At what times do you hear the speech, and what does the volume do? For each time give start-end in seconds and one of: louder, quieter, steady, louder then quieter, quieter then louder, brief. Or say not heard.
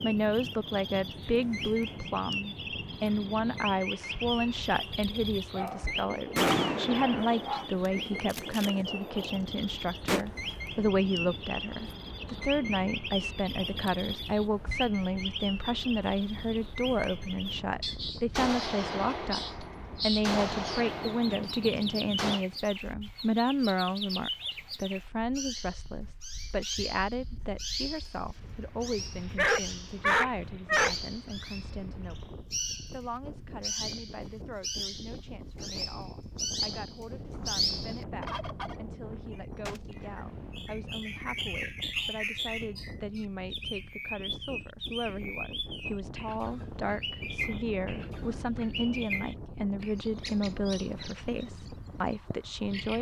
0.0-52.9 quieter then louder.